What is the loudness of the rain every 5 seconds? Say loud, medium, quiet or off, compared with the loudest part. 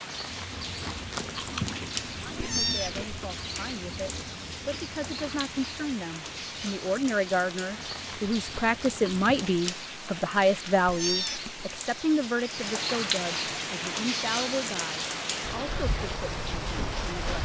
medium, medium, loud, loud.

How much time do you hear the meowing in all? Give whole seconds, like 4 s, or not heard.
2 s.